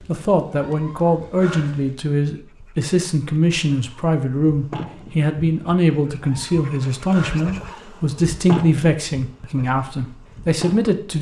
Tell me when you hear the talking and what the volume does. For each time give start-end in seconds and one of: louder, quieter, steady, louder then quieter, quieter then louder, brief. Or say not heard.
0.1-11.1 steady.